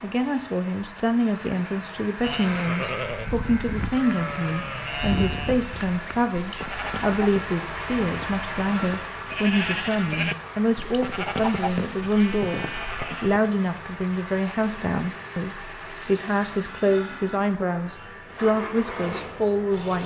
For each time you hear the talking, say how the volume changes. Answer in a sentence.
The talking can be heard from 0.0 to 20.0 s, at a steady volume.